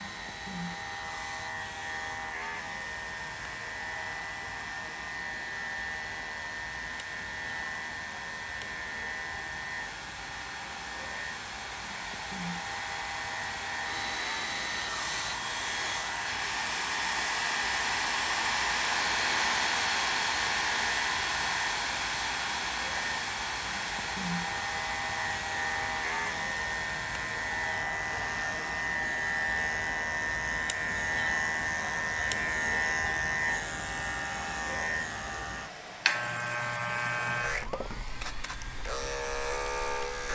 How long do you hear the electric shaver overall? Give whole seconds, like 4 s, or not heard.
40 s.